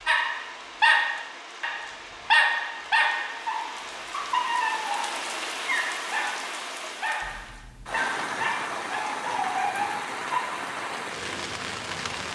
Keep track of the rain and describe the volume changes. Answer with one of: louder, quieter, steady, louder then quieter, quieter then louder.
louder.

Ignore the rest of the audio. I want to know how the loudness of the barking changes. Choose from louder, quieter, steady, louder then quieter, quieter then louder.
quieter.